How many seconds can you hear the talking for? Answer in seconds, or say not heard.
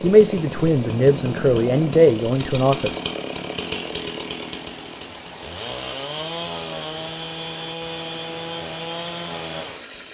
3 s.